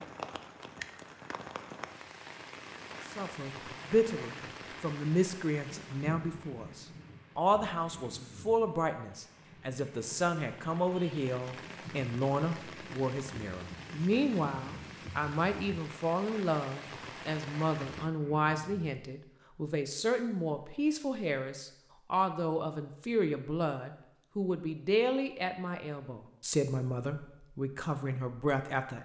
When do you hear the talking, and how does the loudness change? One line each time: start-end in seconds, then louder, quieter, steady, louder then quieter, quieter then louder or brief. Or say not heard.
3.0-29.0 steady.